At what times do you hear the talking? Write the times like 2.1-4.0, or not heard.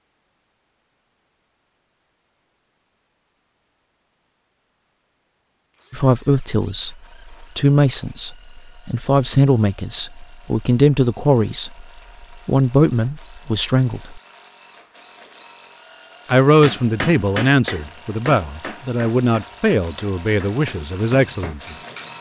5.9-11.8, 12.4-14.2, 16.2-21.8.